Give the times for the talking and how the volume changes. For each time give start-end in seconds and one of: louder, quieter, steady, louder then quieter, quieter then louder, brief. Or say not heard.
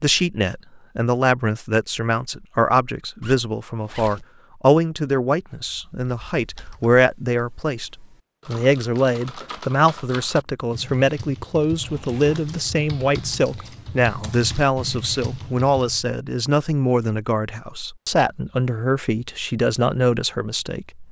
0.0-21.0 steady.